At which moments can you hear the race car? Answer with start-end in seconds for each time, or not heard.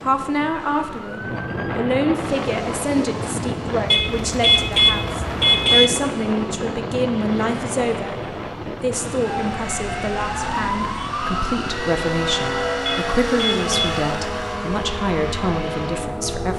2.2-16.5.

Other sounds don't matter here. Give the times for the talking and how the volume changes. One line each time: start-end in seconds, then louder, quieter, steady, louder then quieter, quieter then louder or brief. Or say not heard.
0.0-16.5 steady.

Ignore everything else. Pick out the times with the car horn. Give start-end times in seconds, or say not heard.
3.9-5.9, 12.8-14.1.